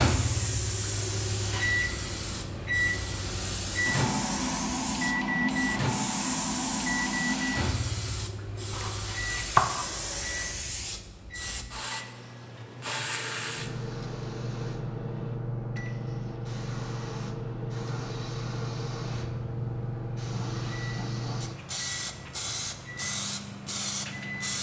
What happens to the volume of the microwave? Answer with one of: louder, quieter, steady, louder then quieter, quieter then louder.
quieter.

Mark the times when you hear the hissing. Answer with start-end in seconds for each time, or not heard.
0.0-24.5.